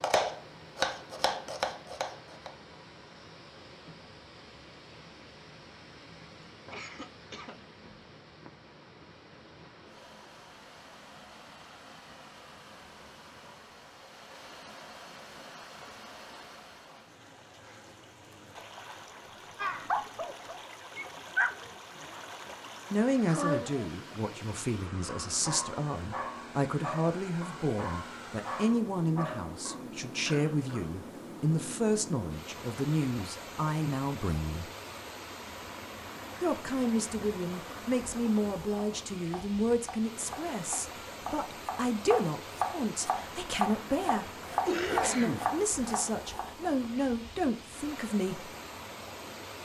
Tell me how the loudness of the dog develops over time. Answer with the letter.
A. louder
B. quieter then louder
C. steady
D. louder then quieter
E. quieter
E.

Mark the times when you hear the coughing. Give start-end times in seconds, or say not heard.
6.7-7.6, 30.2-31.1, 44.6-45.5.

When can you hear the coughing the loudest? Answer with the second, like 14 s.
45 s.